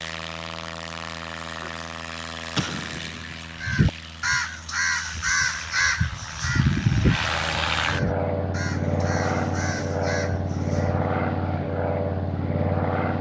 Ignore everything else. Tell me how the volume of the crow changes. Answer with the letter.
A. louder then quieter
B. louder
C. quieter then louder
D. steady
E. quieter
E.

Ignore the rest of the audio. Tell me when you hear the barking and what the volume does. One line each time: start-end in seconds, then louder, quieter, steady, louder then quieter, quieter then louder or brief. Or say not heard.
not heard.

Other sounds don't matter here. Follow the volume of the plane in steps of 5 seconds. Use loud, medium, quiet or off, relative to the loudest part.
medium, loud, loud.